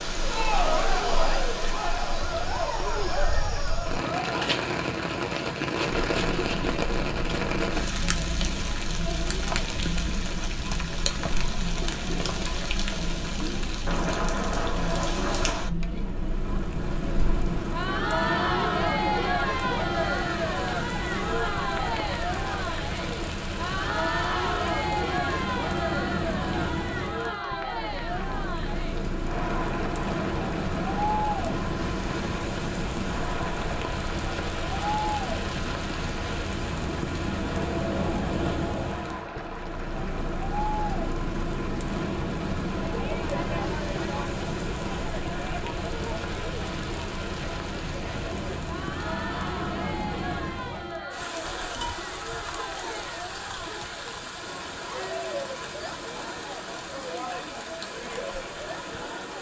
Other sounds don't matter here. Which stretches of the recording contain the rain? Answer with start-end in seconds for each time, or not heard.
0.0-59.3.